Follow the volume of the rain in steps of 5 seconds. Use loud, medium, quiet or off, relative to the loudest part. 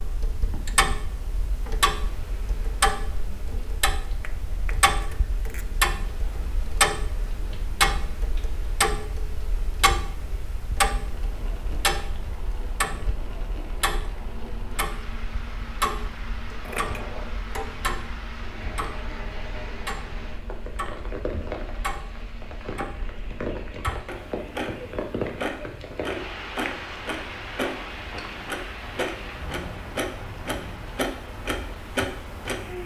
quiet, quiet, medium, medium, loud, loud, medium.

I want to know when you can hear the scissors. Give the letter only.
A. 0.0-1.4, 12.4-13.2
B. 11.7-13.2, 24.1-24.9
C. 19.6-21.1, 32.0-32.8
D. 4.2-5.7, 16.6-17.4
D.